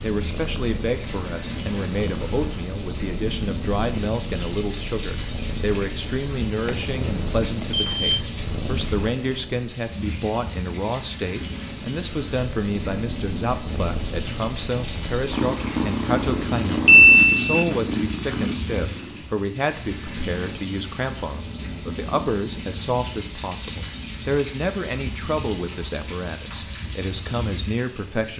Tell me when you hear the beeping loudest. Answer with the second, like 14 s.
17 s.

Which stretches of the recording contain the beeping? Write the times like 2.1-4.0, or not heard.
6.7-8.2, 16.9-17.7.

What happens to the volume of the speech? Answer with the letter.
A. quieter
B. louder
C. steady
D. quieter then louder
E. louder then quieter
C.